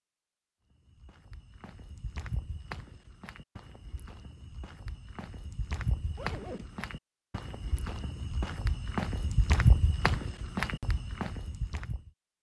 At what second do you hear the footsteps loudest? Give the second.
10 s.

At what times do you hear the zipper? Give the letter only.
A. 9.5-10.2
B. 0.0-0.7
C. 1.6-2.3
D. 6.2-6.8
D.